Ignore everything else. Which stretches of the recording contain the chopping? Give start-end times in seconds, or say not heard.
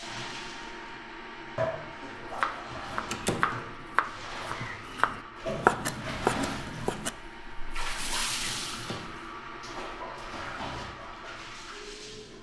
2.1-7.1.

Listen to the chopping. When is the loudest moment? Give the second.
6 s.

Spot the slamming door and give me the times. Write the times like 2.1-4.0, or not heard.
3.1-3.5, 8.7-9.2.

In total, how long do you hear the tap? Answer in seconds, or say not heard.
12 s.